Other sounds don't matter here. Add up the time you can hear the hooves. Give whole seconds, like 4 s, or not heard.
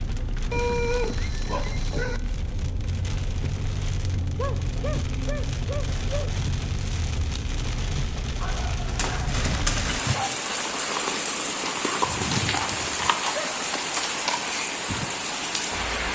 8 s.